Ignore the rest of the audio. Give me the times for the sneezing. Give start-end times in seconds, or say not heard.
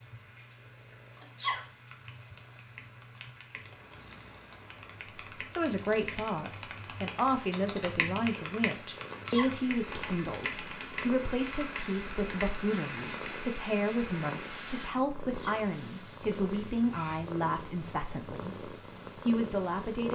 1.2-1.6, 9.1-9.6, 15.2-15.7.